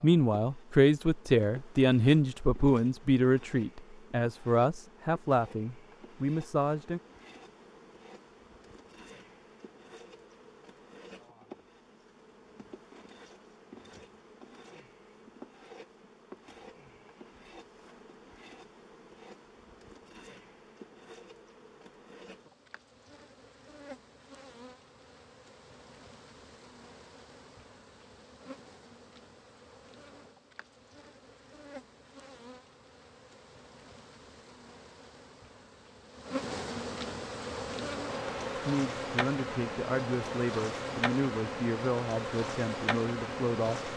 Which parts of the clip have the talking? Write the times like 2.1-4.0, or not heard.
0.0-7.0, 38.5-43.9.